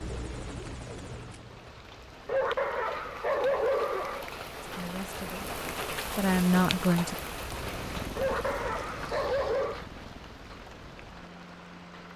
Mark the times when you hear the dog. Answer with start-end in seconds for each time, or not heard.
2.2-4.2, 8.2-9.8.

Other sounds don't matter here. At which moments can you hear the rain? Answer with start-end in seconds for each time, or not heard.
0.0-12.1.